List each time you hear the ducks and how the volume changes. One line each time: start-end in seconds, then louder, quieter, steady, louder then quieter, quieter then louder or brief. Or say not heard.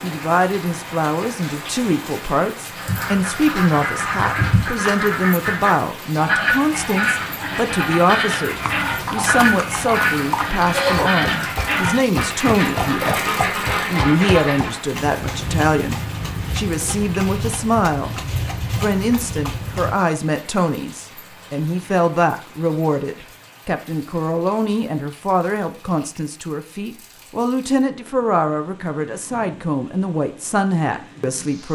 2.8-14.8 steady.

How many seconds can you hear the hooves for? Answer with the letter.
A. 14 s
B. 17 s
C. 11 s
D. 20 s
C.